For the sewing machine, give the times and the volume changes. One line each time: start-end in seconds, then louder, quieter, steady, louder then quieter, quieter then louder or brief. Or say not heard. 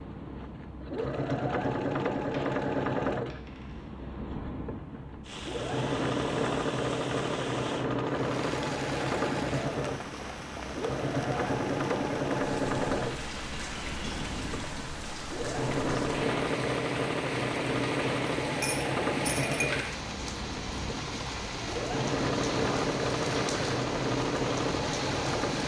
0.0-25.6 steady.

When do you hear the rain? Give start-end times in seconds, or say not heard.
5.2-25.6.